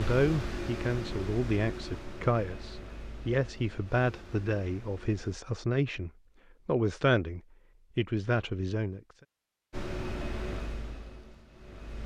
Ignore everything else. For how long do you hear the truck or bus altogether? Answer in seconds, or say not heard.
8 s.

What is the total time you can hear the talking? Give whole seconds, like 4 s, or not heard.
9 s.